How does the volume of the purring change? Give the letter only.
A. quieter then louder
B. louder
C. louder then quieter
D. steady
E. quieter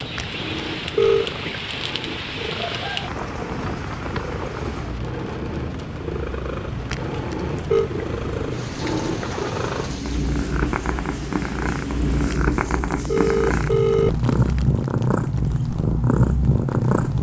B.